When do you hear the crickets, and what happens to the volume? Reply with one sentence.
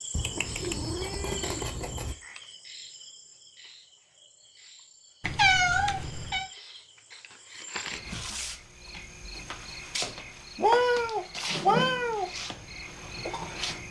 The crickets can be heard from 0.0 to 13.8 s, getting quieter then louder.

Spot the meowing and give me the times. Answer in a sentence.
You can hear the meowing from 0.1 to 2.1 s, from 5.2 to 6.5 s and from 10.6 to 12.3 s.